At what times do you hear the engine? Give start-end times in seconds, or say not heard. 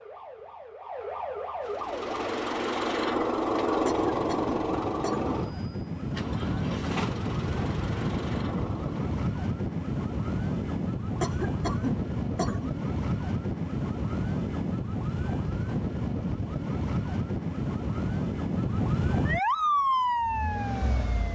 1.6-9.1, 19.4-21.2.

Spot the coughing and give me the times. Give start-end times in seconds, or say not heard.
3.9-5.4, 11.2-12.8.